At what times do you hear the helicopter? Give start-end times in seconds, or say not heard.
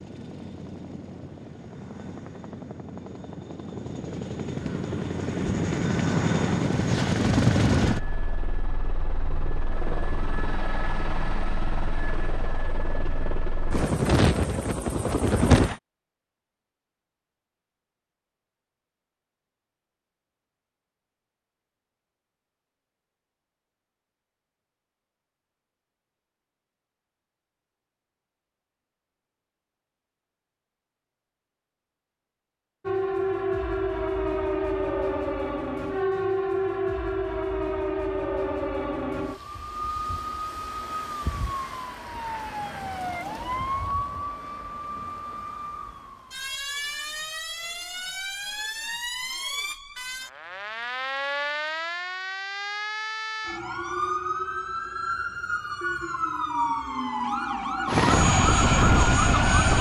0.0-15.8, 57.9-59.7.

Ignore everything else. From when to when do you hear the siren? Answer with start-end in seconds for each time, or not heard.
32.9-59.7.